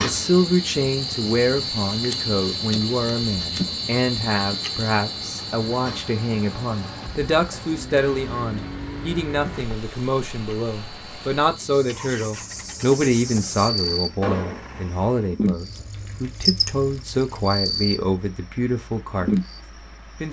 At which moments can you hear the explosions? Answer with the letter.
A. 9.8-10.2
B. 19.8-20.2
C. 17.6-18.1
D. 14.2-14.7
D.